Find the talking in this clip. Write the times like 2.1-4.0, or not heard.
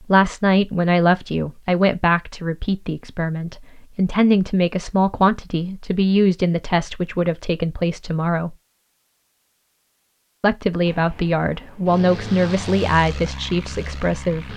0.0-8.6, 10.4-14.5.